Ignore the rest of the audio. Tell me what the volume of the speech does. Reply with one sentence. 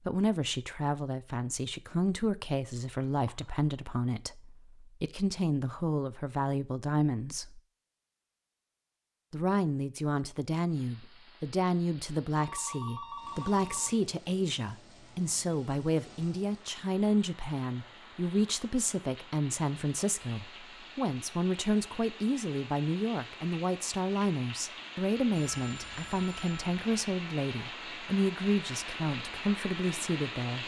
The volume of the speech stays about the same.